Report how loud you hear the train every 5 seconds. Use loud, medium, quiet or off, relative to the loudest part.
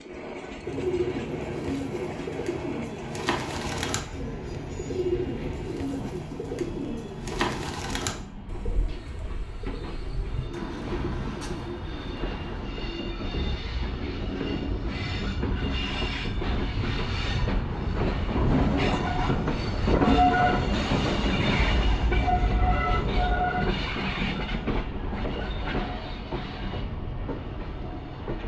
quiet, quiet, medium, loud, loud, medium.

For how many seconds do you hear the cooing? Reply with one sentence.
The cooing can be heard for 12 seconds in total.